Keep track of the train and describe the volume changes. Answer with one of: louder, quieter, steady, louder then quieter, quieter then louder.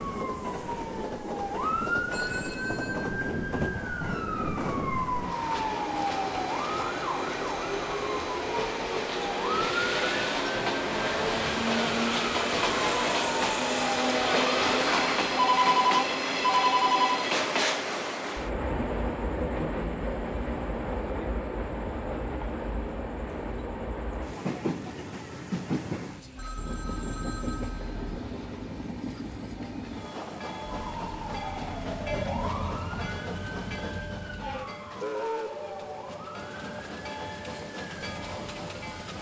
louder then quieter.